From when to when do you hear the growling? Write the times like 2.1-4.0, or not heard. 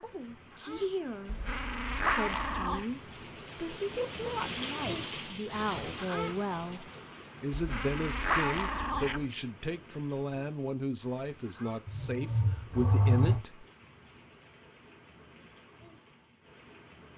1.2-2.9, 7.5-9.2, 11.8-13.4.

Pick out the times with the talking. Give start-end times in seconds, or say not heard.
0.0-13.7.